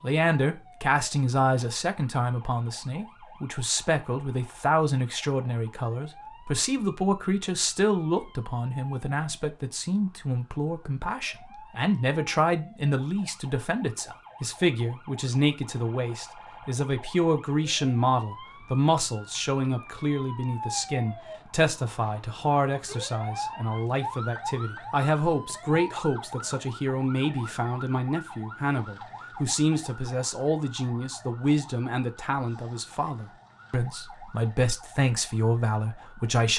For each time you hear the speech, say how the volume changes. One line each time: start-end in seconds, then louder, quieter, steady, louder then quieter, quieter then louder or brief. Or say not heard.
0.0-36.5 steady.